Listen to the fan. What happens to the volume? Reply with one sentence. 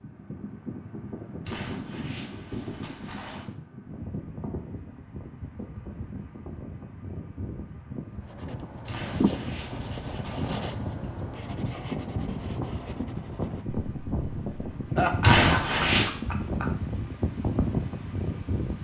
The volume of the fan goes up.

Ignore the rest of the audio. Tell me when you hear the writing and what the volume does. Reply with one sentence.
The writing can be heard from 8.2 to 14.7 s, getting quieter.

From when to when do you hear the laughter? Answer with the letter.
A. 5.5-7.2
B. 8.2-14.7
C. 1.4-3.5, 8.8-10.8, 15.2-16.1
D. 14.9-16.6
D.